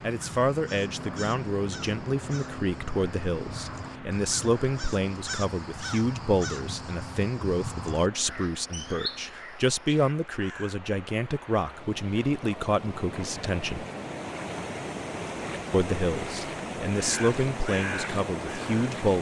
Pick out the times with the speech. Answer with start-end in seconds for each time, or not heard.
0.0-13.8, 15.7-19.1.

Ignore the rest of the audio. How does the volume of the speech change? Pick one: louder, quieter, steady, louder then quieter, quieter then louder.
steady.